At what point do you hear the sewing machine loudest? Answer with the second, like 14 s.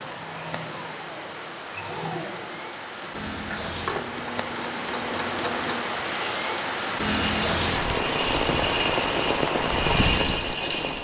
10 s.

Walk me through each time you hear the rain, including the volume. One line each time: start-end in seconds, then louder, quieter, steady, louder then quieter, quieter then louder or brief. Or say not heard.
0.0-10.9 louder.